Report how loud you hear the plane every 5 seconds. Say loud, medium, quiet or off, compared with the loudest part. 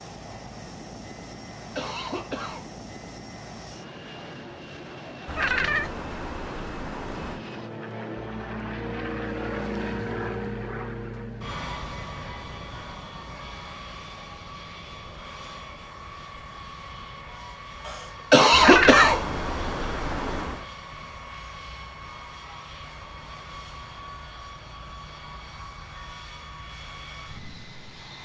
medium, loud, loud, medium, medium, medium.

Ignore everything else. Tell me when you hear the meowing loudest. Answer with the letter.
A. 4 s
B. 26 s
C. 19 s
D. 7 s
C.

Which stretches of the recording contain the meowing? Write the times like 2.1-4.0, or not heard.
5.2-7.4, 18.5-20.6.